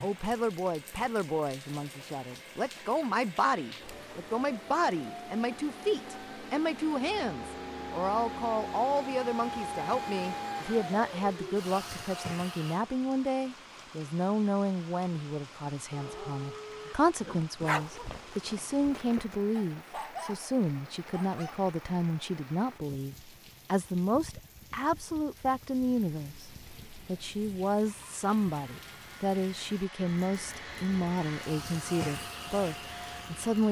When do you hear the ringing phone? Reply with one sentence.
You can hear the ringing phone from 15.9 to 16.9 s.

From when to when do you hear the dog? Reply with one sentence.
The dog can be heard from 15.9 to 21.7 s.